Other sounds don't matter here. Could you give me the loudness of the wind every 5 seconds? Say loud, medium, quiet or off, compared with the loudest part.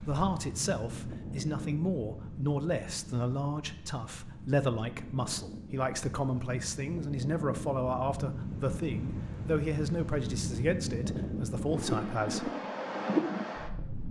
medium, medium, loud.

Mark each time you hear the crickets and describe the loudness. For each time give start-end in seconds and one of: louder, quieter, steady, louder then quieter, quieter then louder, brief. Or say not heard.
not heard.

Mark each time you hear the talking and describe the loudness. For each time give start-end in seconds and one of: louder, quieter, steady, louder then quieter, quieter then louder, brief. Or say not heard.
0.0-12.5 steady.